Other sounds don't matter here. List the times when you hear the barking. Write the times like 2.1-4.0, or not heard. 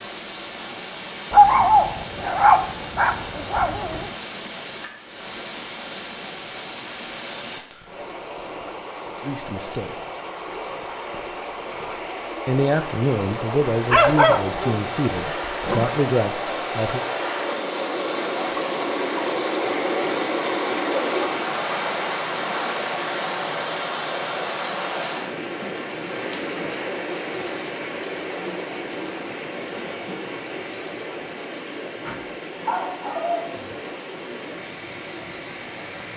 1.3-4.1, 13.9-15.8, 31.9-33.8.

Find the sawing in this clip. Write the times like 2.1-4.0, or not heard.
not heard.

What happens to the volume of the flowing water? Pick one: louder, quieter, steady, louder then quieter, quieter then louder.
louder then quieter.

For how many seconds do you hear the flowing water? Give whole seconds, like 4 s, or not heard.
36 s.